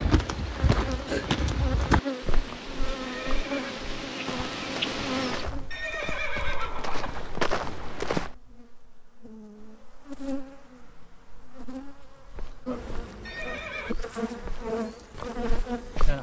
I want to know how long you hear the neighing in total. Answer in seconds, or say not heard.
3 s.